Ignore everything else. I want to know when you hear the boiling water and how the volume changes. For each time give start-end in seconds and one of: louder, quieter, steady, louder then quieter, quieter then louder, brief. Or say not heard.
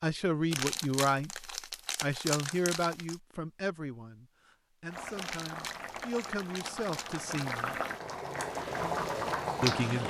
4.8-10.0 louder.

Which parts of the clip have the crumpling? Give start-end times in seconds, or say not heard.
0.5-3.1, 5.2-7.7.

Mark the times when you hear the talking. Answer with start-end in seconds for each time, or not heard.
0.0-7.8, 9.6-10.0.